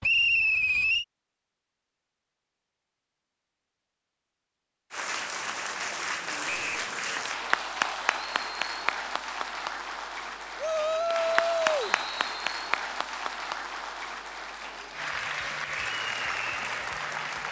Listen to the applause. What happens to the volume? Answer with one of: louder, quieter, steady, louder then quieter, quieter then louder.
steady.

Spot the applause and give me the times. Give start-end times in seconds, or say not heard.
4.9-17.4.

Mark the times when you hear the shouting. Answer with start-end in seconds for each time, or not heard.
10.6-11.9.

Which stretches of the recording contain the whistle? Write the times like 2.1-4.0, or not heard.
0.0-1.1, 6.5-6.9, 11.8-12.4.